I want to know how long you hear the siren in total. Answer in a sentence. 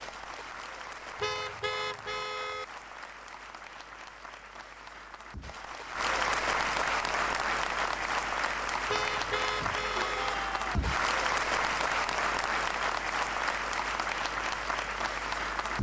The siren can't be heard in this clip.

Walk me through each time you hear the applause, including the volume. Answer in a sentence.
You can hear the applause from 0.0 to 15.7 s, getting louder.